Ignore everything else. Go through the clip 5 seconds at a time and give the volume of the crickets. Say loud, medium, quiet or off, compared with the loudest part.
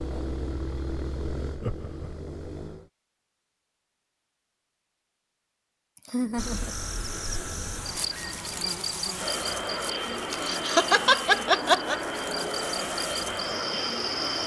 off, loud, loud.